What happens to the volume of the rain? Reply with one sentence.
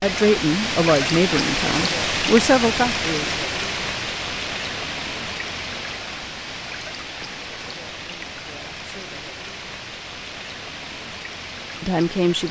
The loudness of the rain goes down.